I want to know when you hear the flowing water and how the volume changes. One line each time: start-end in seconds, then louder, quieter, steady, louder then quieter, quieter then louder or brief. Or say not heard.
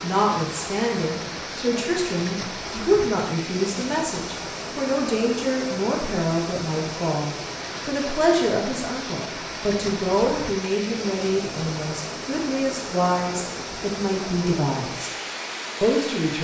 0.0-16.3 steady.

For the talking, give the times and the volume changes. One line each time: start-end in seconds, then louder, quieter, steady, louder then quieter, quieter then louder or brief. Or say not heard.
0.0-15.2 steady
15.8-16.3 brief.